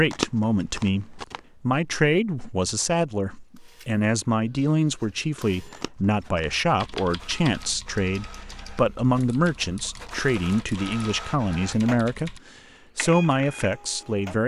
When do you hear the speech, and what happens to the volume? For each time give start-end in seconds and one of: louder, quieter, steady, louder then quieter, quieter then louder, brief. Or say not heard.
0.0-14.4 steady.